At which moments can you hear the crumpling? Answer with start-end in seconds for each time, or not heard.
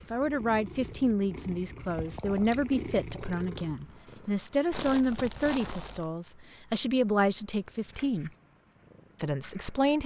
4.7-6.1.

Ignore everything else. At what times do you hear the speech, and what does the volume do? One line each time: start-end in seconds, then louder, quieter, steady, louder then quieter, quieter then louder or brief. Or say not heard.
0.0-8.3 steady
9.2-10.0 brief.